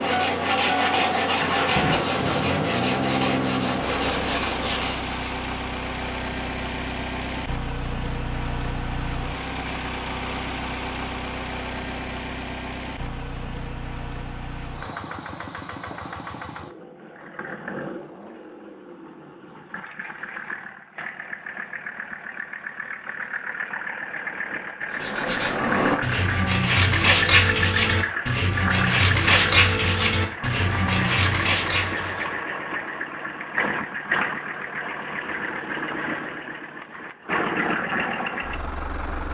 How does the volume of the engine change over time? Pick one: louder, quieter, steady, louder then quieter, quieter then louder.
quieter then louder.